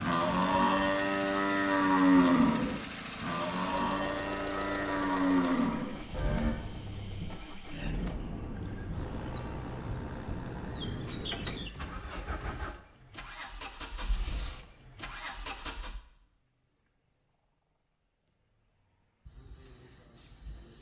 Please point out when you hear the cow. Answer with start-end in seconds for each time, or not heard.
0.0-6.5.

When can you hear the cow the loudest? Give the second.
2 s.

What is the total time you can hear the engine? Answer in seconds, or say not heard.
16 s.